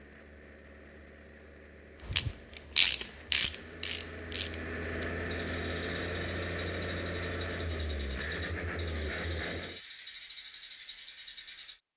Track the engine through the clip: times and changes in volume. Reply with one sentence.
You can hear the engine from 0.0 to 9.8 s, getting louder.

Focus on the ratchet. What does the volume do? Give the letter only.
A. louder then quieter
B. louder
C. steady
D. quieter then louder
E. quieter
E.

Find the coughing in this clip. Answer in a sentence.
You can't hear the coughing here.